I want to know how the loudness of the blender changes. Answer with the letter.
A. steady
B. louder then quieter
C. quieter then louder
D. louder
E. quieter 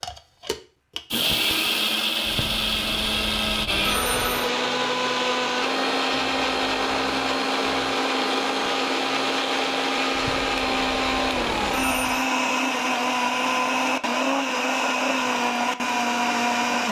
A.